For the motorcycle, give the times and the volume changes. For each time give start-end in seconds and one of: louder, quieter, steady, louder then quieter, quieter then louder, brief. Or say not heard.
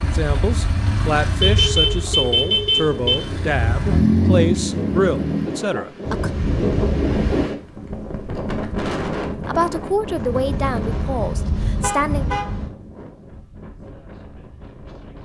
0.0-5.5 quieter then louder.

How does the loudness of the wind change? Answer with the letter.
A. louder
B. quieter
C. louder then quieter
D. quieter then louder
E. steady
C.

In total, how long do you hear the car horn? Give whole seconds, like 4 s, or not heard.
6 s.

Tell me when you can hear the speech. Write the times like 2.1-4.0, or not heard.
0.0-6.3, 9.4-12.2.